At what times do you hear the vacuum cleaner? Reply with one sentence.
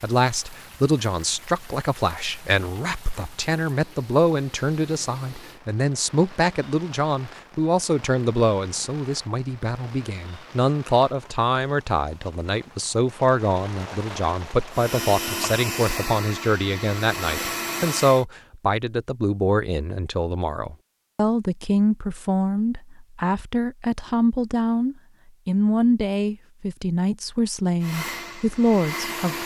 You can hear the vacuum cleaner from 14.7 to 18.2 s and from 27.8 to 29.4 s.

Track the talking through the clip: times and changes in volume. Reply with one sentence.
The talking can be heard from 0.0 to 29.4 s, at a steady volume.